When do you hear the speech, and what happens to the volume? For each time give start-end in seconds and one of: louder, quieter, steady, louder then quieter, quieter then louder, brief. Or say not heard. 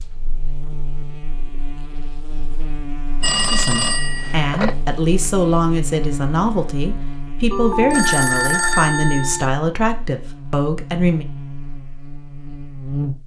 3.5-11.2 steady.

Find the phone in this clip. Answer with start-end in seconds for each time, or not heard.
3.2-4.8, 7.5-9.5.